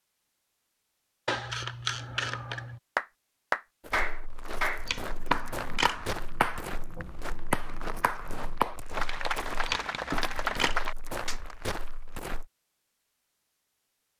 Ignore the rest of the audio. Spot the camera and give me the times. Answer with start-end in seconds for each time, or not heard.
1.2-2.8, 4.8-6.0, 9.7-10.8.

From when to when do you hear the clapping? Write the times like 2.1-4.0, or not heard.
3.0-11.6.